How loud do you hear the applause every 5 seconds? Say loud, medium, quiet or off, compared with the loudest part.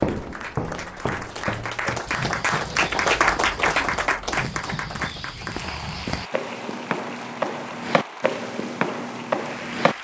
loud, medium.